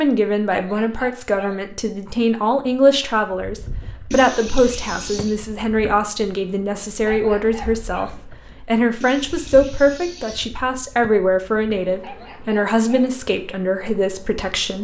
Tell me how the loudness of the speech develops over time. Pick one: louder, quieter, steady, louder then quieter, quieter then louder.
steady.